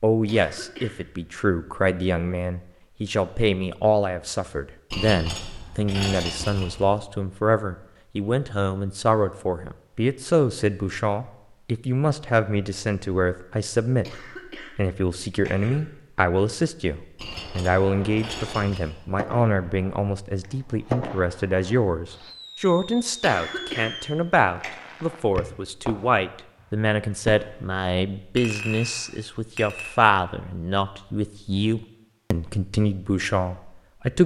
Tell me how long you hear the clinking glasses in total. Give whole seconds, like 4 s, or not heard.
5 s.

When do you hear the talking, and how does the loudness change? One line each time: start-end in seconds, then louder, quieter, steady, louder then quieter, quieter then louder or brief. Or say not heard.
0.0-34.2 steady.